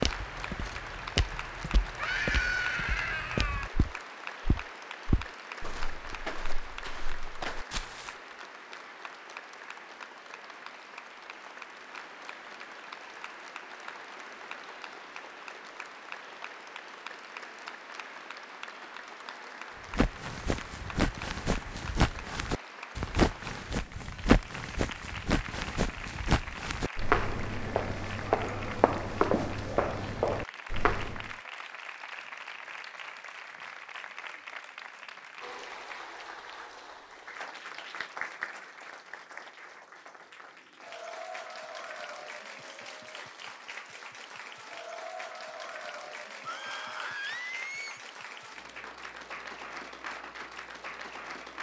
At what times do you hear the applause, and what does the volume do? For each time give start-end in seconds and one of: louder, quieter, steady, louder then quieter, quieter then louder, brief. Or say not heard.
0.0-51.5 steady.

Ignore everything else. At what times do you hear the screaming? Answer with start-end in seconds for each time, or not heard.
1.9-3.7, 46.5-48.0.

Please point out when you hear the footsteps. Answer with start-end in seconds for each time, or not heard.
0.0-8.1, 19.9-31.3.